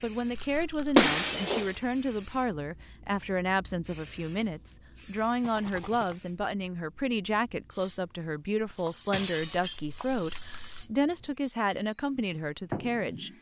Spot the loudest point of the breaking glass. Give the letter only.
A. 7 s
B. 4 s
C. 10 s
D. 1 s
D.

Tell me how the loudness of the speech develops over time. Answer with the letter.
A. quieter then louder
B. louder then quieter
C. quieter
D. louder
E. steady
E.